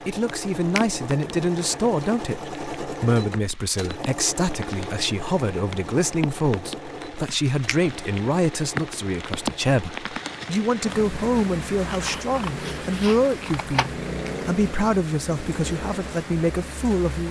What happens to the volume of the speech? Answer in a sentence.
The volume of the speech stays about the same.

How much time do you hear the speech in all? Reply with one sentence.
The speech can be heard for 17 seconds in total.